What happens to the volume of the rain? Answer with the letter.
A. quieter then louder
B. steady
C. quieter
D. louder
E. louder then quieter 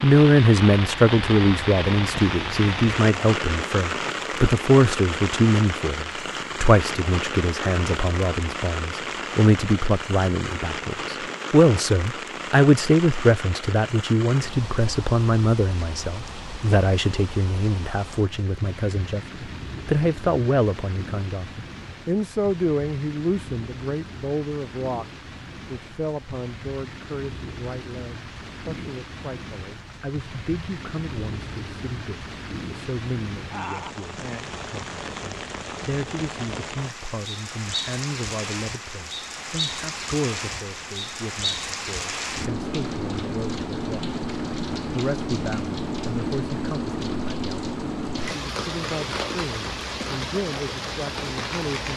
A.